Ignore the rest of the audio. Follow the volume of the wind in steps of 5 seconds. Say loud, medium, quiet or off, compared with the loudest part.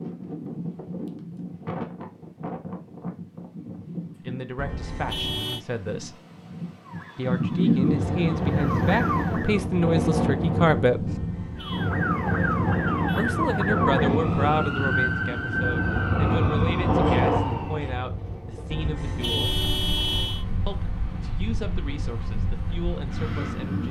medium, loud, loud, loud, medium.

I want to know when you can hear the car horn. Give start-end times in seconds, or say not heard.
4.5-5.7, 11.1-11.9, 18.7-20.4.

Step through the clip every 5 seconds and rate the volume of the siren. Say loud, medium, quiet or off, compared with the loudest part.
off, medium, loud, loud, off.